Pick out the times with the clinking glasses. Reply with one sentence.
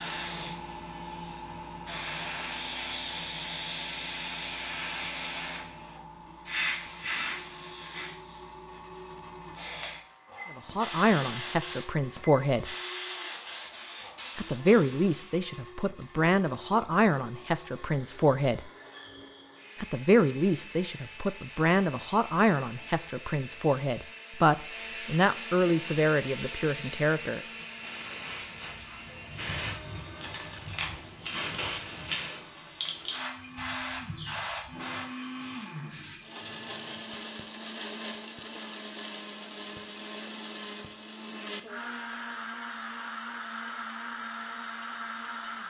You can't hear the clinking glasses here.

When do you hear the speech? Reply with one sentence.
The speech can be heard from 10.6 to 12.7 s, from 14.3 to 18.6 s and from 19.8 to 27.4 s.